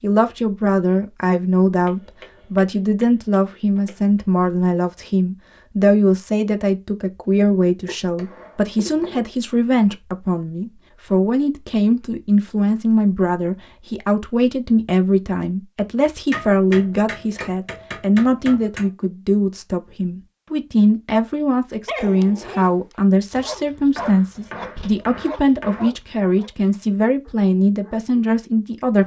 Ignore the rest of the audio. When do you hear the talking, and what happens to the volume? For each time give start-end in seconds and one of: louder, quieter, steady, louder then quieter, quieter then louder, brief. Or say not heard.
0.0-29.0 steady.